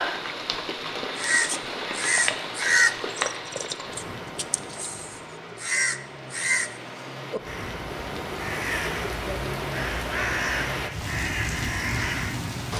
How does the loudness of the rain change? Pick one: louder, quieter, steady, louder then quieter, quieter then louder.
quieter then louder.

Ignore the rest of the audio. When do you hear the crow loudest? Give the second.
3 s.